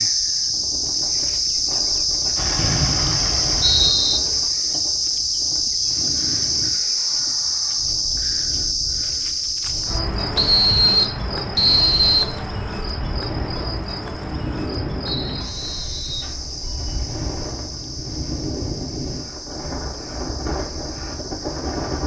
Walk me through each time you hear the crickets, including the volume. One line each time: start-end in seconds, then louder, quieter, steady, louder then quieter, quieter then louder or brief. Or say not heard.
0.0-22.0 quieter.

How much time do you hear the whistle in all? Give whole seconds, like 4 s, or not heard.
5 s.